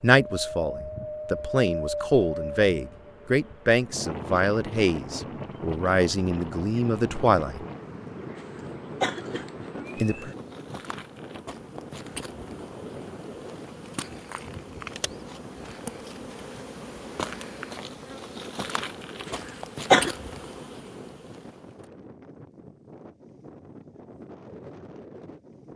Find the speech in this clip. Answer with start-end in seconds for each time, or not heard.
0.0-7.7, 9.9-10.3.